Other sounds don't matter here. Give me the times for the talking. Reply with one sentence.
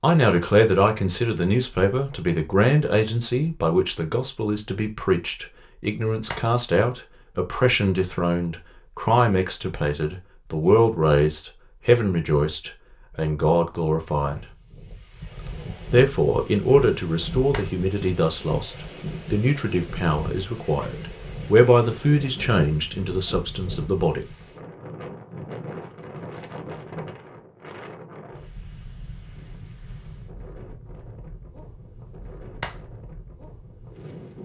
The talking can be heard from 0.0 to 14.4 s and from 15.9 to 24.3 s.